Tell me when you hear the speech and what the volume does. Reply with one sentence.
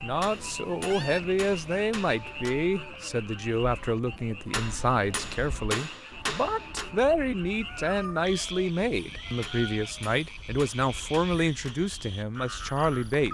You can hear the speech from 0.0 to 13.2 s, at a steady volume.